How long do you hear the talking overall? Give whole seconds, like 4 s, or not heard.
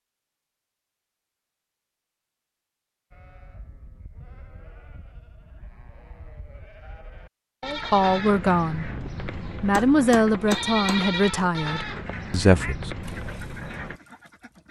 4 s.